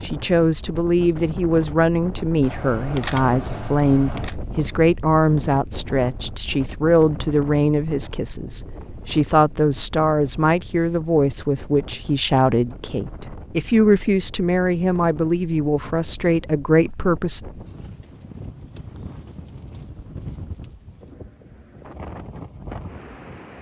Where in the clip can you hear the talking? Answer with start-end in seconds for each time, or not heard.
0.0-17.4.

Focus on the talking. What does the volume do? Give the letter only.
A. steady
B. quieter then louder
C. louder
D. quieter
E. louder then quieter
A.